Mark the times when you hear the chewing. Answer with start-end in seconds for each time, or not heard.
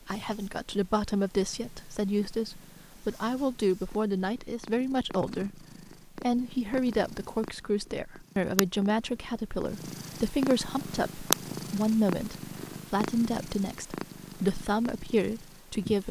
not heard.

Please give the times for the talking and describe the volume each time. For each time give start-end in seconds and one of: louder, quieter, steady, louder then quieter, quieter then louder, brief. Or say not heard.
0.1-16.0 steady.